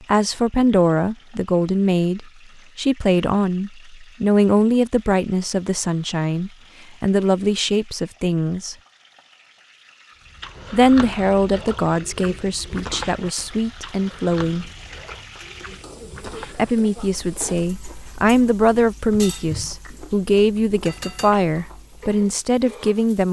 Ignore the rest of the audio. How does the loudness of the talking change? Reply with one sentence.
The volume of the talking stays about the same.